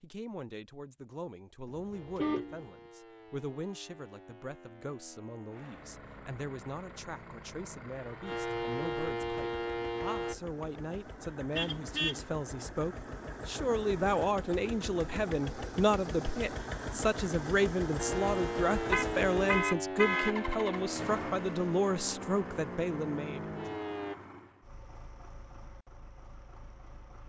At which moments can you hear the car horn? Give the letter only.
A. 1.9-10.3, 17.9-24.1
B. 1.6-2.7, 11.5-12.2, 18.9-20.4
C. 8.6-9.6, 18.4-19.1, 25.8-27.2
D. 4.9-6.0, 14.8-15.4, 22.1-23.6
B.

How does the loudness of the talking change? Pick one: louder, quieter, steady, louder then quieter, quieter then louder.
louder.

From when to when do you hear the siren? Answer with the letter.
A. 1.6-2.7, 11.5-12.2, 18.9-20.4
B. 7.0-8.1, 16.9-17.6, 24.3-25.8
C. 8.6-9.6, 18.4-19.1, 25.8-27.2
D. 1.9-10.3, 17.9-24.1
D.